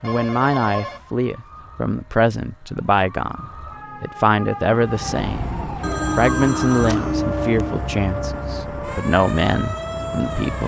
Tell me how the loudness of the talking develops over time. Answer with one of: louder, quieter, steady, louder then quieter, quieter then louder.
steady.